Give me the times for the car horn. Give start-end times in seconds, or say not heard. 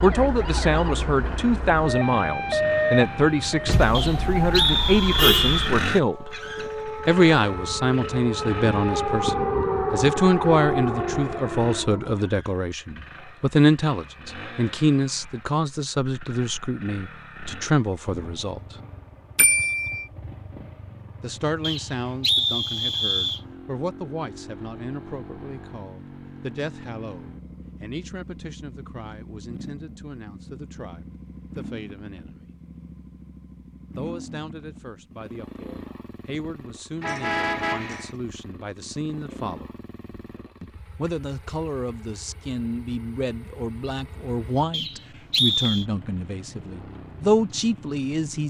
3.6-5.7, 19.4-20.1, 37.0-38.1.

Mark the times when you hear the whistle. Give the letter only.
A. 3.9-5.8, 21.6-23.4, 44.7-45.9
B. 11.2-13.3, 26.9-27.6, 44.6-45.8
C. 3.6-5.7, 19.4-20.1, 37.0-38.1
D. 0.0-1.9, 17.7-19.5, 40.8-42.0
A.